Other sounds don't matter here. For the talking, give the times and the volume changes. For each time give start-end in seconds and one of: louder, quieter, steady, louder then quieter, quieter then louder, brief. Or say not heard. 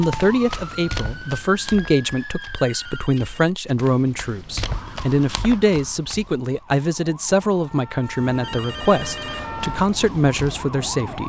0.0-11.2 steady.